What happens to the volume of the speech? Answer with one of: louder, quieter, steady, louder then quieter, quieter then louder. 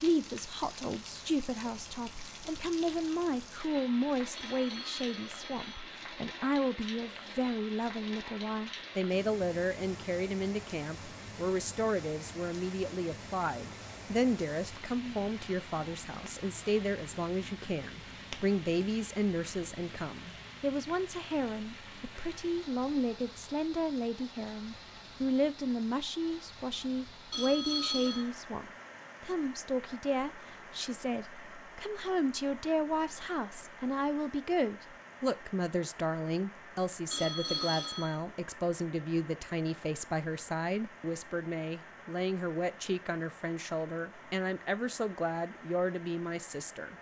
steady.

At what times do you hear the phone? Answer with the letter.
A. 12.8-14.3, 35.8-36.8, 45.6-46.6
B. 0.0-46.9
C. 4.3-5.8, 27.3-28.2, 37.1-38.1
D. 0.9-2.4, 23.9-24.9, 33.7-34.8
C.